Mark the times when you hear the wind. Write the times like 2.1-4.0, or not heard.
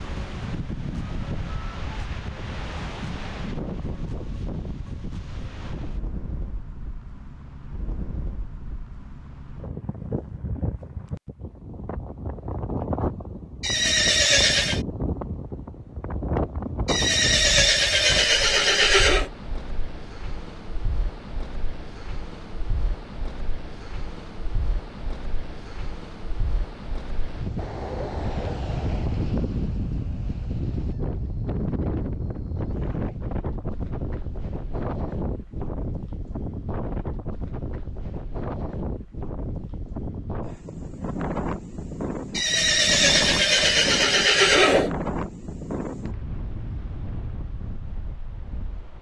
0.0-48.9.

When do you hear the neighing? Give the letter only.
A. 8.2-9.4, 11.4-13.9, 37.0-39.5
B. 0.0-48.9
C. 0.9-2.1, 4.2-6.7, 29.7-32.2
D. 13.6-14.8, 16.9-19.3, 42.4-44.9
D.